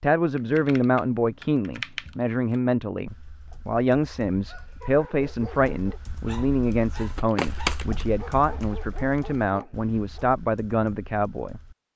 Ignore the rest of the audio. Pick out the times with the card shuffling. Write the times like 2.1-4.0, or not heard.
7.0-8.1.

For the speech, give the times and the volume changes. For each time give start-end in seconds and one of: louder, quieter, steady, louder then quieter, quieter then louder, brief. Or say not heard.
0.0-11.6 steady.